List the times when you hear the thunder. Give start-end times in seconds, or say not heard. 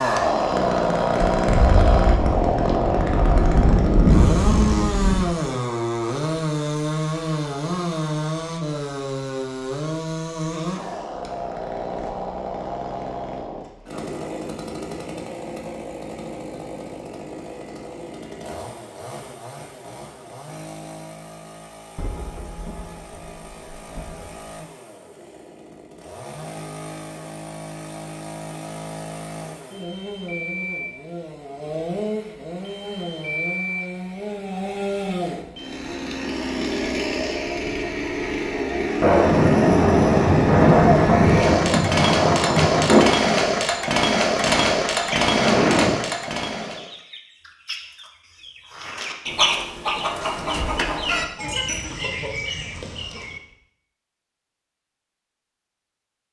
1.4-5.2, 21.9-24.4, 39.0-43.0.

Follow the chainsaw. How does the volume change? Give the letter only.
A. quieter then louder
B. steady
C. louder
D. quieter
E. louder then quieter
A.